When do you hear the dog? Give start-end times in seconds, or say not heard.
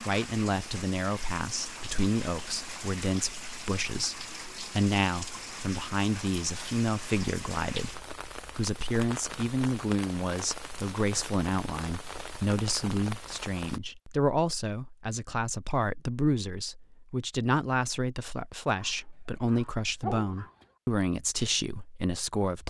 18.8-20.6.